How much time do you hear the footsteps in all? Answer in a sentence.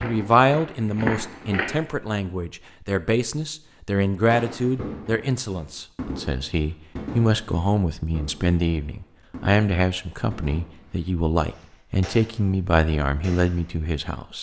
You can hear the footsteps for 2 seconds altogether.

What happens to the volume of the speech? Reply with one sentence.
The loudness of the speech stays about the same.